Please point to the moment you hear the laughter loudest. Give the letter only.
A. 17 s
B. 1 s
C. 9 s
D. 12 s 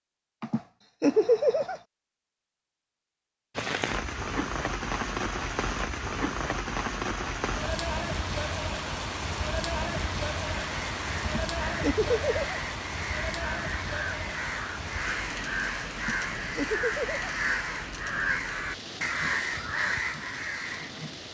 B.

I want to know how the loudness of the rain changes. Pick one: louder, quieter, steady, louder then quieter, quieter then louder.
quieter.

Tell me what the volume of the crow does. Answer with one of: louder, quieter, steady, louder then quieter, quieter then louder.
louder.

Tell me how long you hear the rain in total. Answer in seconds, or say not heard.
18 s.